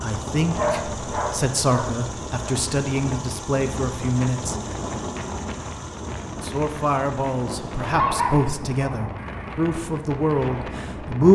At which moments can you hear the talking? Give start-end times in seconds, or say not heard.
0.0-4.5, 6.4-11.2.